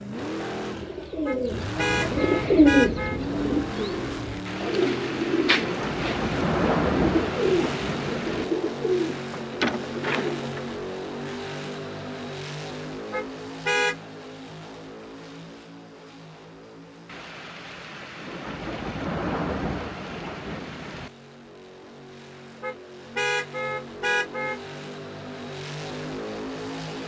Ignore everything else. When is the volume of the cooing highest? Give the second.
3 s.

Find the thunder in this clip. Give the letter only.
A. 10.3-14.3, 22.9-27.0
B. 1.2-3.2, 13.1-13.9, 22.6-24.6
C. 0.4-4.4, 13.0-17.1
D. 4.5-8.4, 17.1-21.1
D.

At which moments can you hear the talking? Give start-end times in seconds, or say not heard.
not heard.